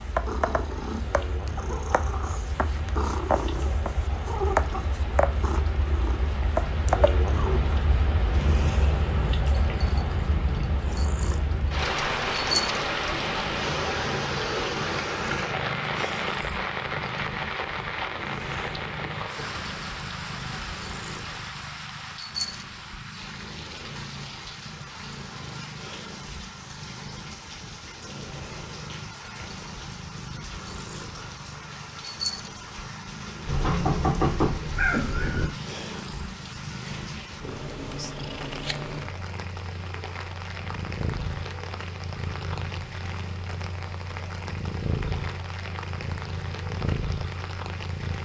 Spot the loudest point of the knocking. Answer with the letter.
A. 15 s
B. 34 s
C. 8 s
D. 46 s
B.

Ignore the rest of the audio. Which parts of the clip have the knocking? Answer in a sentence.
The knocking can be heard from 33.5 to 35.5 s.